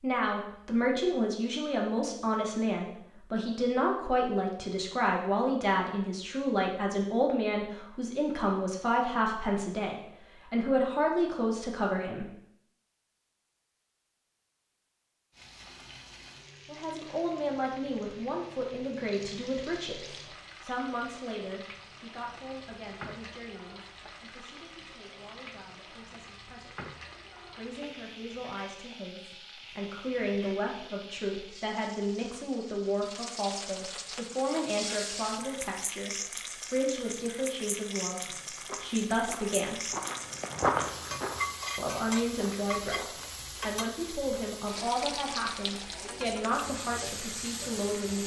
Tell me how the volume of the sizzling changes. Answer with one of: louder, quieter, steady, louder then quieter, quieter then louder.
louder.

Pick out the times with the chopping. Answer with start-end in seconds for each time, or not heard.
not heard.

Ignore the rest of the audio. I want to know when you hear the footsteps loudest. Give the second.
41 s.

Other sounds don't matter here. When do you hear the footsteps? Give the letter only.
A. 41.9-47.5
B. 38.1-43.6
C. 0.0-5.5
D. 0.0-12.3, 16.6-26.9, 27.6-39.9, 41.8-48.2
B.